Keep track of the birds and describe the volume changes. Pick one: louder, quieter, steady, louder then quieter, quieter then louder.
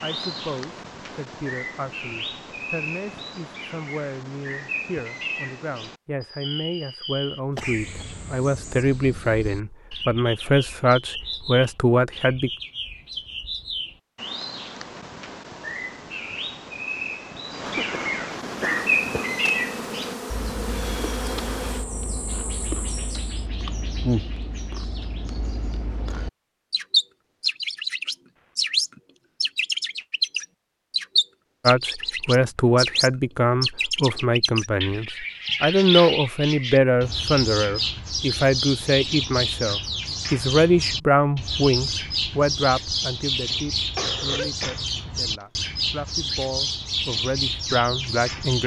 louder.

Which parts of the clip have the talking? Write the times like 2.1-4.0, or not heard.
0.0-12.5, 31.6-48.6.